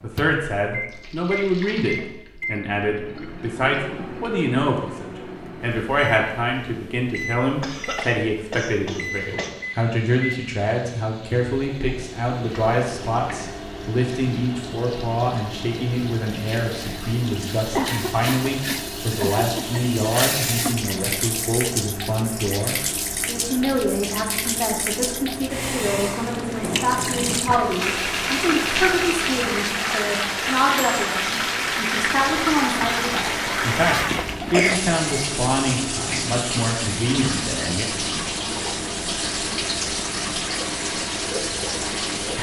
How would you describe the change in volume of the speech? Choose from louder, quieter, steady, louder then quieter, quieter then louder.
steady.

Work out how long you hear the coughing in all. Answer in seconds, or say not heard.
6 s.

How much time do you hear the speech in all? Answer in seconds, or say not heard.
38 s.